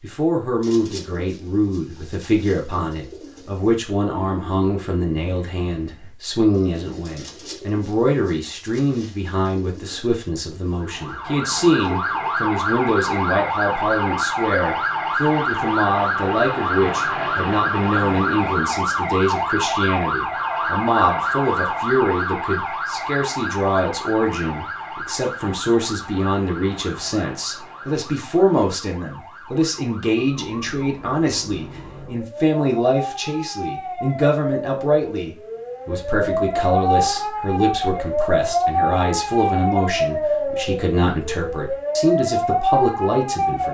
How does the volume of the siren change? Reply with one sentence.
The loudness of the siren goes down, then up.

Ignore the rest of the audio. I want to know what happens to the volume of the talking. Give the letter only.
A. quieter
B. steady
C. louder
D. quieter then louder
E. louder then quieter
B.